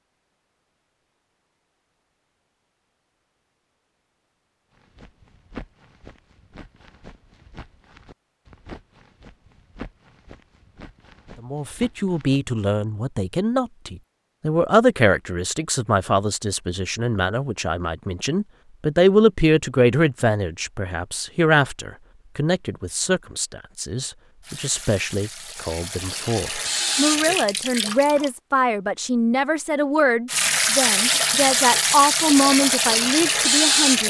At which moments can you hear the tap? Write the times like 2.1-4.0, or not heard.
24.4-28.3, 30.2-34.0.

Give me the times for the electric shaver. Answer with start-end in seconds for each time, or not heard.
not heard.